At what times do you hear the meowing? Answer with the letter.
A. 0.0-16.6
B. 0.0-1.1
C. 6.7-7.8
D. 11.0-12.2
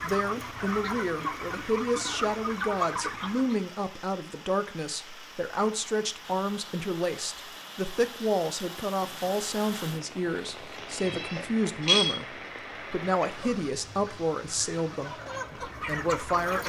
D.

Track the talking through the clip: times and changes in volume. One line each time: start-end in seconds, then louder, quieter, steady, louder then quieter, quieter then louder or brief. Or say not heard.
0.0-16.6 steady.